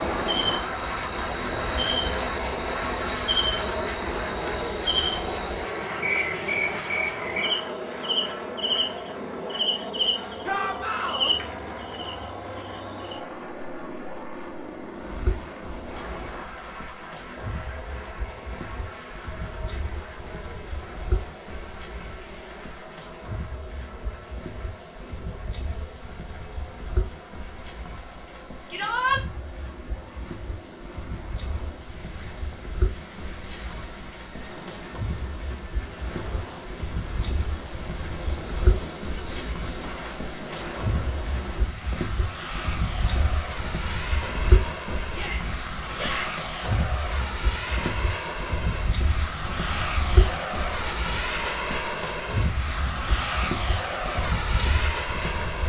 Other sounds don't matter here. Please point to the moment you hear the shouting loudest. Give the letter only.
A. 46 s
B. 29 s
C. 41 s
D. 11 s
B.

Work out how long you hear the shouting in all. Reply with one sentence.
You can hear the shouting for 3 seconds altogether.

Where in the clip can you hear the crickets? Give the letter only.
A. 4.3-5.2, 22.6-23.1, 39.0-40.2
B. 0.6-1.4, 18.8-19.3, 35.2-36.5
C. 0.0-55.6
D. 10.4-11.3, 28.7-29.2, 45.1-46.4
C.